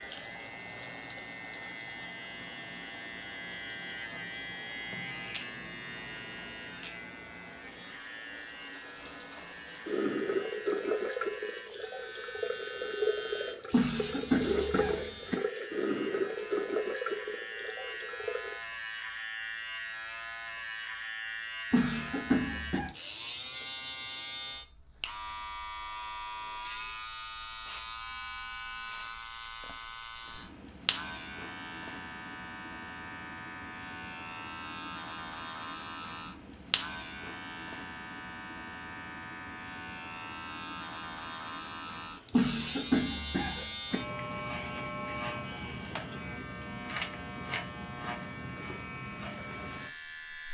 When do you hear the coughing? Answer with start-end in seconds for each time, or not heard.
13.7-15.3, 21.7-22.9, 42.3-44.0.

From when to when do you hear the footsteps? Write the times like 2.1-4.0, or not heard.
not heard.